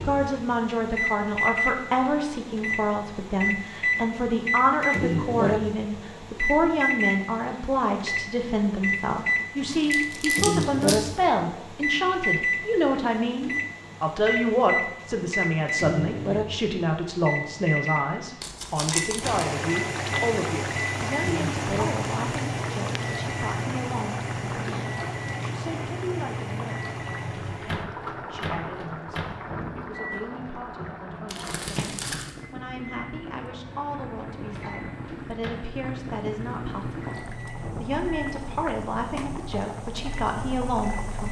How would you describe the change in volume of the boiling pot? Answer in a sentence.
The volume of the boiling pot goes down.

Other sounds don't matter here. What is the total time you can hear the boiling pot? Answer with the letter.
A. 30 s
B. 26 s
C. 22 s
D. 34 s
C.